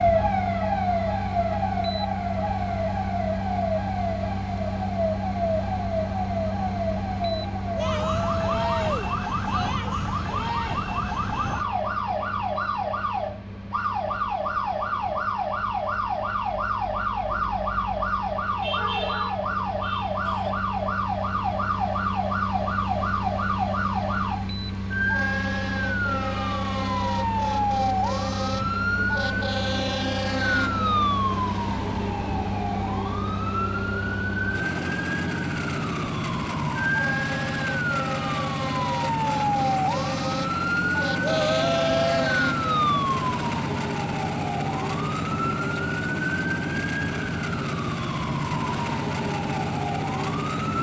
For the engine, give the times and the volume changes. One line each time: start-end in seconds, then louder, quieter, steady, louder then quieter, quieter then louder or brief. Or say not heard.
0.0-50.7 quieter then louder.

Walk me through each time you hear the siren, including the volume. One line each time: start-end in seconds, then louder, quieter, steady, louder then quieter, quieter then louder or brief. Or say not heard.
0.0-50.7 steady.